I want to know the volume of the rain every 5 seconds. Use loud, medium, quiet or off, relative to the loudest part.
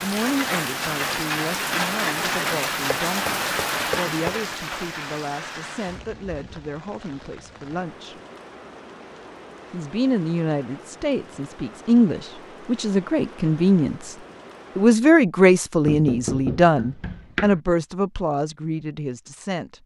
loud, quiet, quiet, off.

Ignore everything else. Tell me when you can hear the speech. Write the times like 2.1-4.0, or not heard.
0.0-8.2, 9.7-14.2, 14.8-19.8.